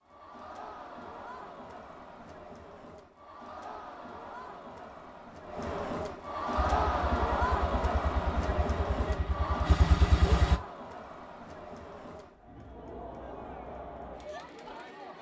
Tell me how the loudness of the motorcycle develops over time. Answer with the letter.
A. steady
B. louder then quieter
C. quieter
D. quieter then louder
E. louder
E.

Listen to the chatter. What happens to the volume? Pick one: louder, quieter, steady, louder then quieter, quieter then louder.
louder then quieter.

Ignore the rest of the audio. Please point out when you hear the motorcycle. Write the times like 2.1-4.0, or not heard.
6.5-10.6.